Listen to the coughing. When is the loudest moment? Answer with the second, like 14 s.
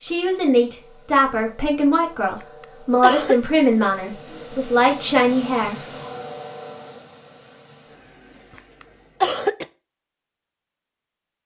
9 s.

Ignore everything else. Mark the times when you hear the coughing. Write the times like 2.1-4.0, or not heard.
2.4-3.4, 8.6-9.7.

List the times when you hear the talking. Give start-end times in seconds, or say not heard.
0.0-5.8.